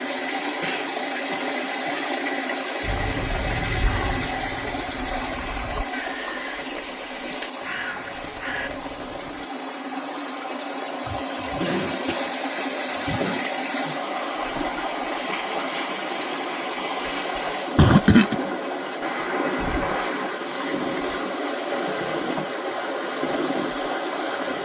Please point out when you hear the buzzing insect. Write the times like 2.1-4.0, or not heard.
not heard.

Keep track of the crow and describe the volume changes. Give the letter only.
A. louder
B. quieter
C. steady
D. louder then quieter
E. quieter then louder
E.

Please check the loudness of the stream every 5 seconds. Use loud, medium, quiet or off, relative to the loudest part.
loud, medium, loud, loud, loud.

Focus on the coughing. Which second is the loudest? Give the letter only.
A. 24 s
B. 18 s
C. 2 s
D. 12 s
B.